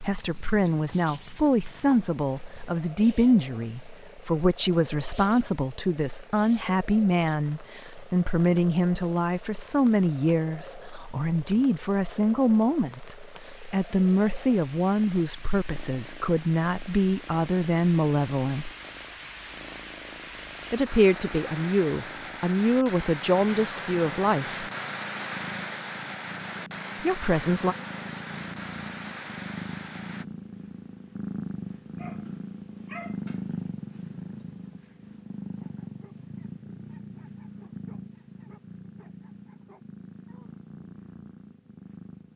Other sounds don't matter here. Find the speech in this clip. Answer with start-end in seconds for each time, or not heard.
0.0-18.7, 20.7-24.6, 27.0-27.8.